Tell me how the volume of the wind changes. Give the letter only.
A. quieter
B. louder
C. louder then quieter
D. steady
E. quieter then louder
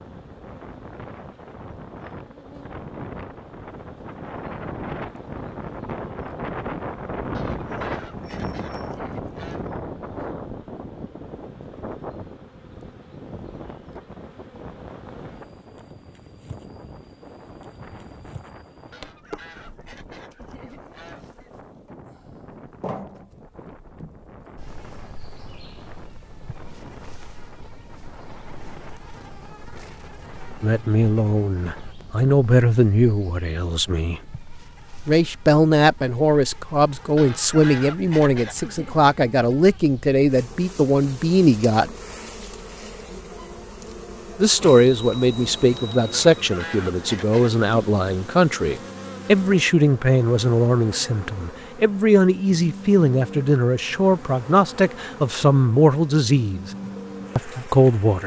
A.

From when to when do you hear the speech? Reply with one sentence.
The speech can be heard from 30.6 to 34.2 s, from 35.0 to 42.0 s, from 44.4 to 56.7 s and from 57.4 to 58.2 s.